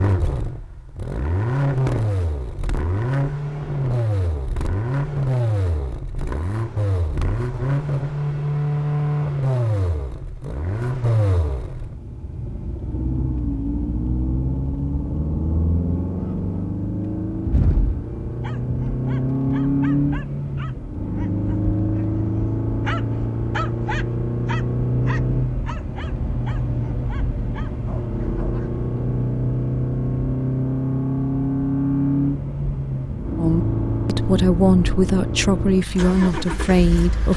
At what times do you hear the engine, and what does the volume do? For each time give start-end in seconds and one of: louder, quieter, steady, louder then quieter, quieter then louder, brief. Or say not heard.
0.0-37.3 steady.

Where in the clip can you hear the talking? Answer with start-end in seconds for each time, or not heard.
33.4-37.3.